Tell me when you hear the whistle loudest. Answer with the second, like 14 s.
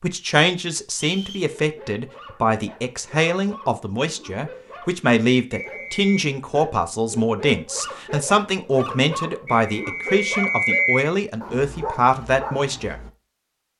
11 s.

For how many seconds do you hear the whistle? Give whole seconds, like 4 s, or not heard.
3 s.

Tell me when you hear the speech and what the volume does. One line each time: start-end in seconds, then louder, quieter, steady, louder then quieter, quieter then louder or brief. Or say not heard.
0.0-12.9 steady.